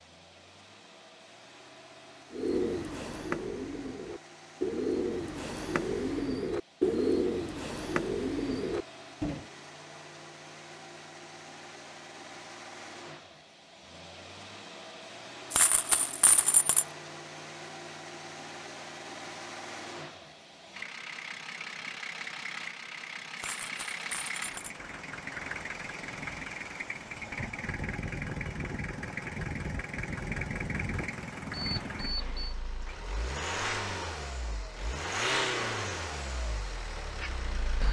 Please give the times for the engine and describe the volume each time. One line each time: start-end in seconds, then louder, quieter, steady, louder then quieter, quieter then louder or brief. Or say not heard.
0.0-37.8 louder.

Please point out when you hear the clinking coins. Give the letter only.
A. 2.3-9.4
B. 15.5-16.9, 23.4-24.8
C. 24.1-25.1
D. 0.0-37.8
B.